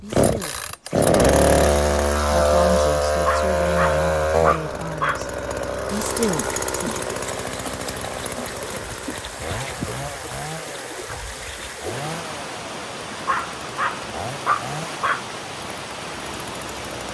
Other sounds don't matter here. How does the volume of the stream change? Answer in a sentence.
The volume of the stream stays about the same.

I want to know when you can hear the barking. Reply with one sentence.
The barking can be heard from 3.2 to 5.2 s and from 13.2 to 15.2 s.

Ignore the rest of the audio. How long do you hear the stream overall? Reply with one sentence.
You can hear the stream for 11 seconds altogether.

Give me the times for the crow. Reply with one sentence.
You can't hear the crow here.